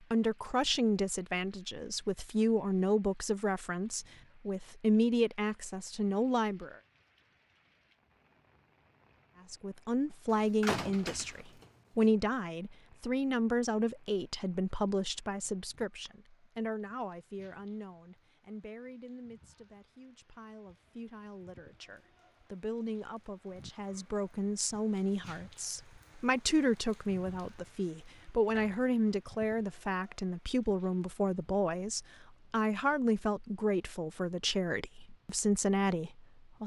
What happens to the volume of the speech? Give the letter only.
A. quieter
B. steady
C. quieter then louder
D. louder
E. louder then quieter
C.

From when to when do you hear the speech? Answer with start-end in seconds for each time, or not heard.
0.1-6.8, 9.5-36.6.